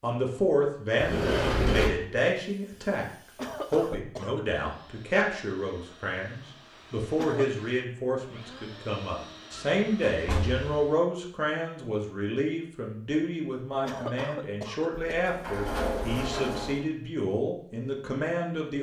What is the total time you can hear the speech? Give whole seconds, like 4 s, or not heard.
18 s.